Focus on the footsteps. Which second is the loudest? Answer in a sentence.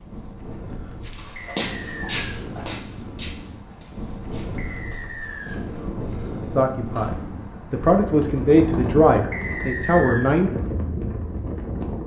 The volume of the footsteps peaks at 2 seconds.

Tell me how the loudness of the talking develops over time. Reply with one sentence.
The loudness of the talking goes up.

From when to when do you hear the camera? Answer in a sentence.
The camera can't be heard in this clip.